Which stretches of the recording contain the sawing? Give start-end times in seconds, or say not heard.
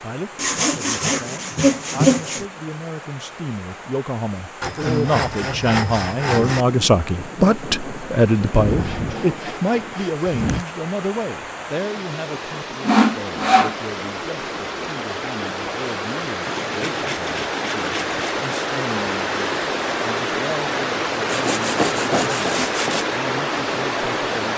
0.3-2.4, 4.6-6.7, 8.5-10.7, 12.8-13.8, 16.4-18.4, 21.2-23.1.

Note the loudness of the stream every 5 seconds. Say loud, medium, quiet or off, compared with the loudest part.
quiet, quiet, medium, loud, loud.